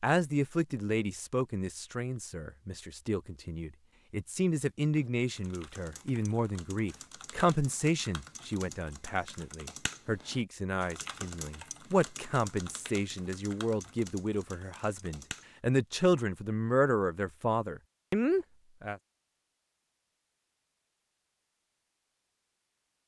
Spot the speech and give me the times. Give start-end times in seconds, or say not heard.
0.0-19.0.